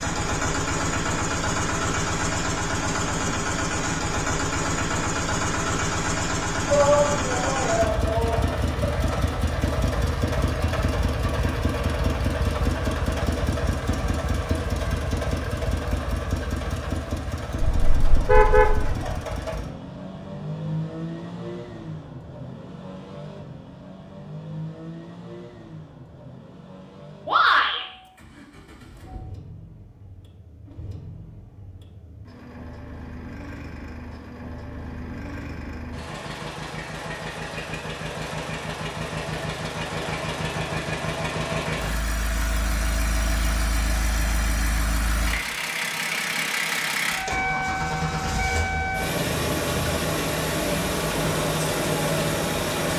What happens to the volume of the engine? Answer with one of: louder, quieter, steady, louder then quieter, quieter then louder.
quieter then louder.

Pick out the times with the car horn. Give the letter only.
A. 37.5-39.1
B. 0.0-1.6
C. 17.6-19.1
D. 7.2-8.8
C.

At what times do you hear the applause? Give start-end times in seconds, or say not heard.
not heard.